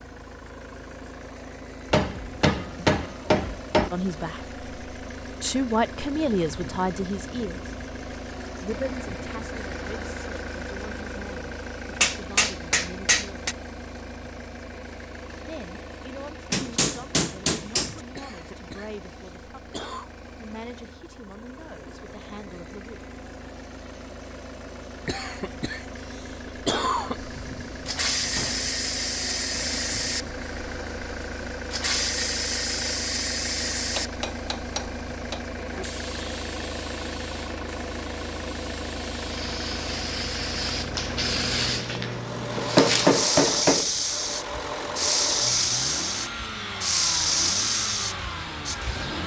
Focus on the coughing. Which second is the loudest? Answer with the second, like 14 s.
27 s.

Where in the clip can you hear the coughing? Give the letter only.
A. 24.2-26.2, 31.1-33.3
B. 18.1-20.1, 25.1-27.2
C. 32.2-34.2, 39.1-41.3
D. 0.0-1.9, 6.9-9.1
B.